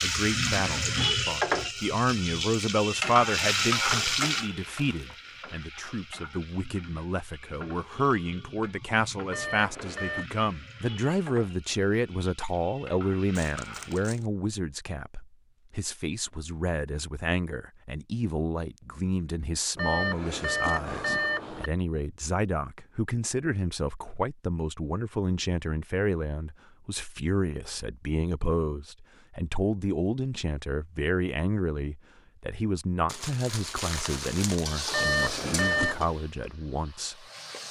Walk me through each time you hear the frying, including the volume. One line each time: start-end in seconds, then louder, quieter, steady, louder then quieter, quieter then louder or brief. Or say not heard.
0.0-14.2 quieter
34.6-37.6 brief.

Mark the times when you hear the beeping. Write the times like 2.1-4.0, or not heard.
9.3-10.2, 19.8-21.7, 34.9-36.0.